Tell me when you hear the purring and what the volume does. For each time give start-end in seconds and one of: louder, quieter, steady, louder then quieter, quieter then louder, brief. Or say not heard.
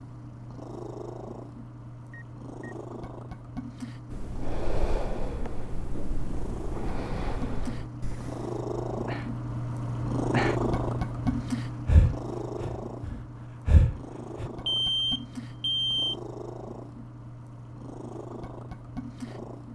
0.0-19.7 louder then quieter.